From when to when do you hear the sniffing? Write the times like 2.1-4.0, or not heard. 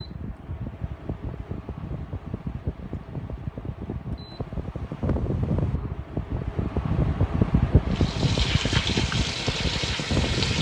not heard.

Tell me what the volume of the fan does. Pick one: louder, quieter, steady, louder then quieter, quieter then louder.
louder.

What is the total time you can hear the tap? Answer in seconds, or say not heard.
3 s.